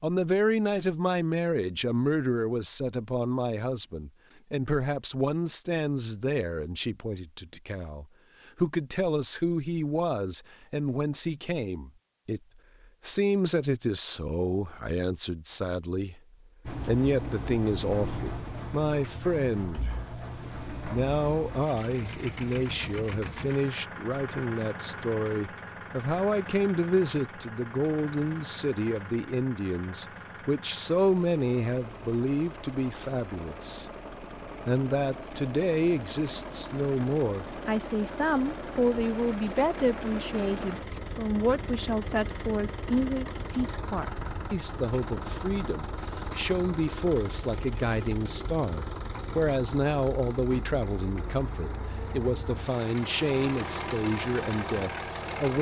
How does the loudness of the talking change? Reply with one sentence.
The loudness of the talking stays about the same.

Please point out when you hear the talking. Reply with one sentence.
You can hear the talking from 0.0 to 12.4 s, from 13.0 to 16.2 s, from 16.9 to 19.9 s, from 20.9 to 33.9 s and from 34.6 to 55.5 s.